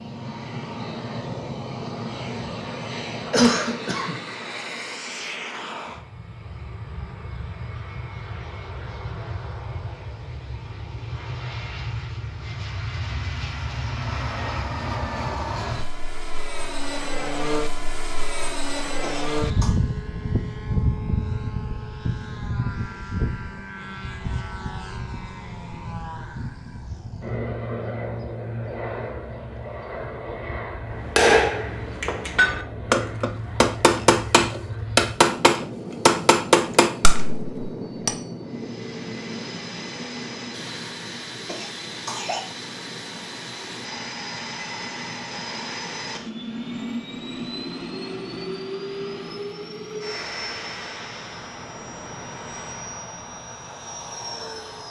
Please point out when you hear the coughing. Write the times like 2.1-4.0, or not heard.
3.3-4.2, 19.0-19.8, 41.5-42.4.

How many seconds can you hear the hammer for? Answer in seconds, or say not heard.
7 s.